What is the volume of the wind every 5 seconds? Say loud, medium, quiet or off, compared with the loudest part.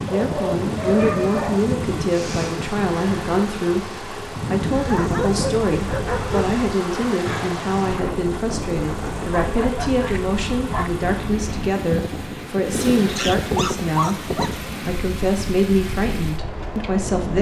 loud, loud, loud, medium.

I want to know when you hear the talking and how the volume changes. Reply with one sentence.
You can hear the talking from 0.1 to 17.3 s, at a steady volume.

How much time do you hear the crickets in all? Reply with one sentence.
The crickets can't be heard in this clip.